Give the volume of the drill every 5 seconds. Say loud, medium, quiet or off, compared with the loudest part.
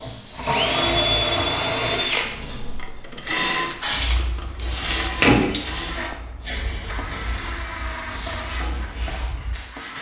loud, medium.